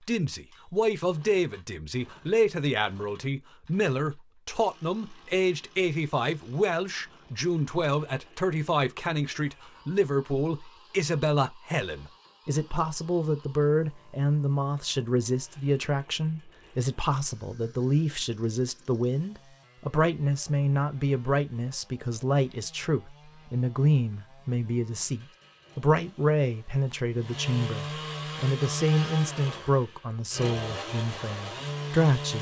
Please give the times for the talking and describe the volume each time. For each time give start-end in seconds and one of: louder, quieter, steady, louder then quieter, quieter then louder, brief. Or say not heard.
0.0-32.3 steady.